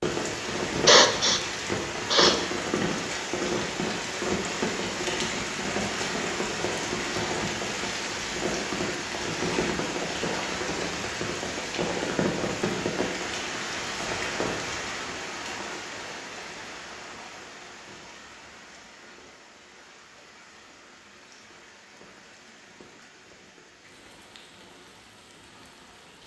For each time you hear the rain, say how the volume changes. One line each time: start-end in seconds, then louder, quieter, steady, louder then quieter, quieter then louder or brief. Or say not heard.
0.0-26.2 quieter.